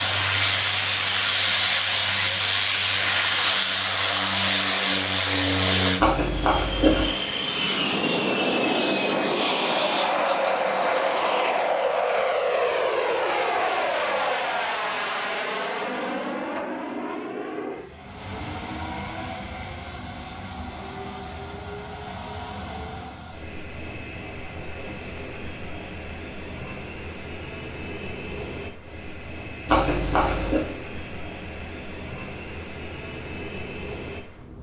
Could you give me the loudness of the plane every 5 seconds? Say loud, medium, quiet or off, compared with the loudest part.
loud, loud, loud, medium, quiet, quiet, quiet.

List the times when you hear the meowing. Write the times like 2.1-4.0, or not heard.
6.0-7.2, 29.6-30.7.